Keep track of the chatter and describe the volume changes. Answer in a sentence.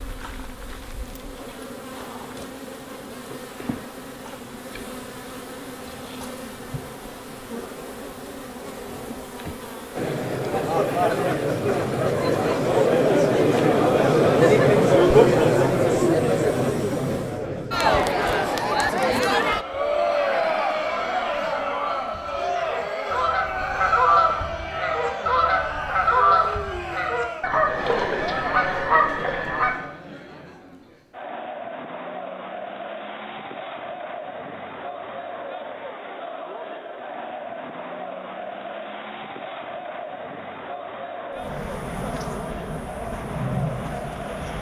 The loudness of the chatter goes down.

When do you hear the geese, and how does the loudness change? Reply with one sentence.
You can hear the geese from 19.4 to 29.8 s, getting louder.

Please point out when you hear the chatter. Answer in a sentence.
You can hear the chatter from 9.9 to 44.5 s.